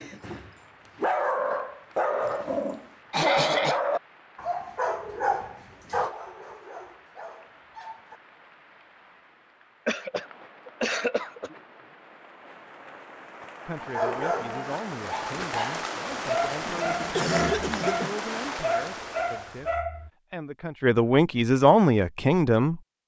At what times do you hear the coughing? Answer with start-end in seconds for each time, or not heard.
3.1-3.8, 9.8-11.6, 16.6-18.1.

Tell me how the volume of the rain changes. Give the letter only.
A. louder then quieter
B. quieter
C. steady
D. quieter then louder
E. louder
E.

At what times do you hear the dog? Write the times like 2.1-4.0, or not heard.
0.0-8.2, 13.8-20.1.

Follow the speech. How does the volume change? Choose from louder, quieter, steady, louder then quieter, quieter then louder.
louder.